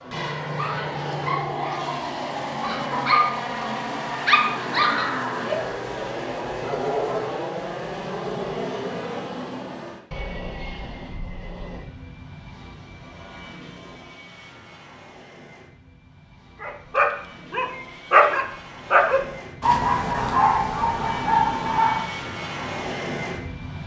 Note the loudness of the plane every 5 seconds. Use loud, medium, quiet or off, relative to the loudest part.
loud, loud, medium, quiet, loud.